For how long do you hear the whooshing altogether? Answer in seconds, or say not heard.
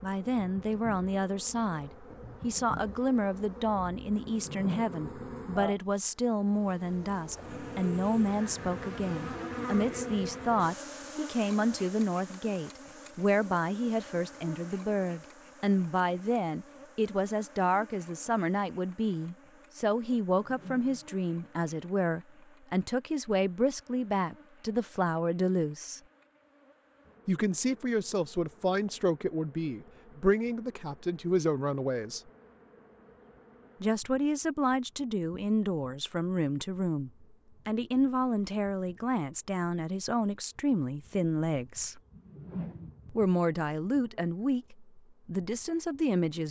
2 s.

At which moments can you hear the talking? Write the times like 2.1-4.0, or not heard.
0.0-26.0, 27.2-32.3, 33.8-42.0, 43.1-46.4.